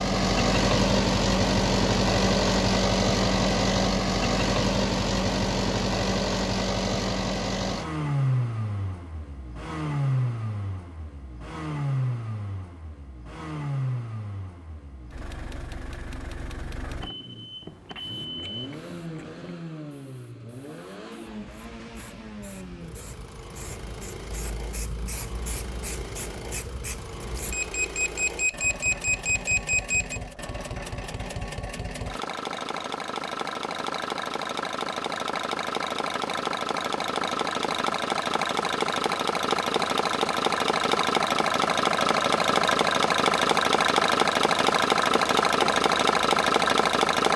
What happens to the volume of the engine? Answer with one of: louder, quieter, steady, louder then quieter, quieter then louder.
quieter then louder.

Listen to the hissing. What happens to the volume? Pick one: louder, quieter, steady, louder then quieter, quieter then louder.
louder.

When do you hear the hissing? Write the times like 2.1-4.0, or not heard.
17.6-27.6.